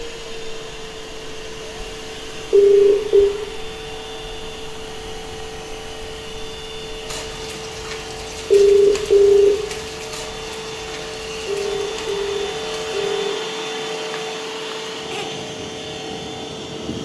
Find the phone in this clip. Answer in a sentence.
The phone can be heard from 2.5 to 3.4 s, from 8.5 to 9.6 s and from 11.4 to 13.4 s.